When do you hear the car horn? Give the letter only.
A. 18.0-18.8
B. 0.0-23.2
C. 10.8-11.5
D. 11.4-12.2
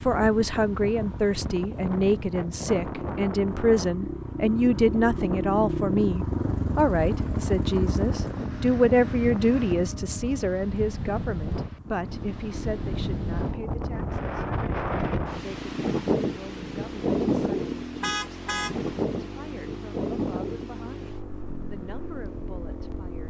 A.